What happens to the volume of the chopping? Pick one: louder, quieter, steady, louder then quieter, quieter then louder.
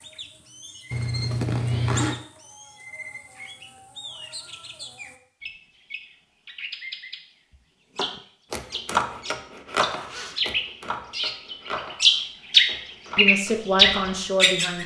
quieter.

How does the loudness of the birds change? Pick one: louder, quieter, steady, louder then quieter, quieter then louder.
louder.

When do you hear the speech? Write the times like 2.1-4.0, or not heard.
13.2-14.8.